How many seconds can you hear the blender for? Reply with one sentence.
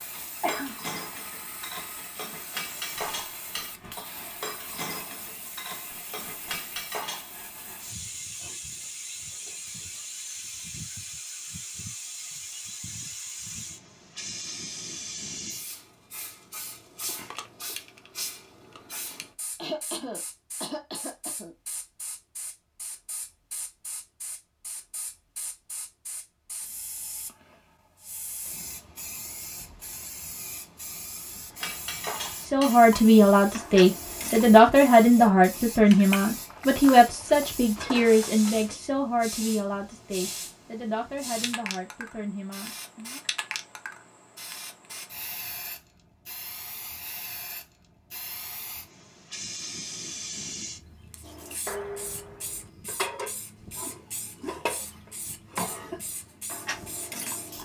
The blender can't be heard in this clip.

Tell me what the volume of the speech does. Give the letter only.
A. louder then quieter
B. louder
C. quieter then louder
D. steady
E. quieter
E.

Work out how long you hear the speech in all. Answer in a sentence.
You can hear the speech for 11 seconds altogether.